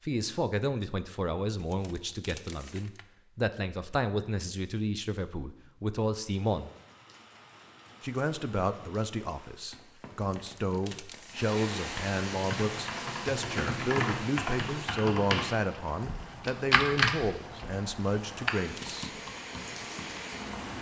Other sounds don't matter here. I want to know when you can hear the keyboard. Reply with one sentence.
The keyboard can be heard from 12.3 to 20.6 s.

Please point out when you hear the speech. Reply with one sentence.
The speech can be heard from 0.0 to 6.7 s and from 8.0 to 19.1 s.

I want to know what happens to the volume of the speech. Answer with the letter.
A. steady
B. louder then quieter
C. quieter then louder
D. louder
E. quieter
A.